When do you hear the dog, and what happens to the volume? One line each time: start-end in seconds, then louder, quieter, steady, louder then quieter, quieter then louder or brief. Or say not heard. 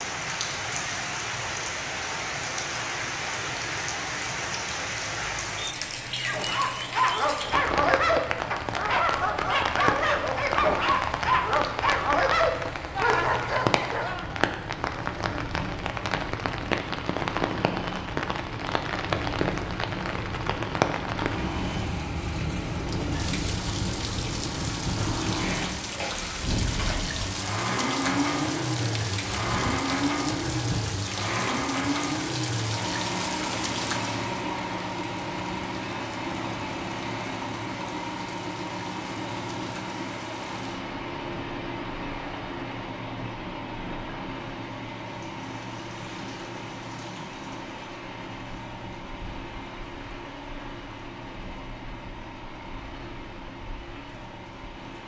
6.2-14.3 steady.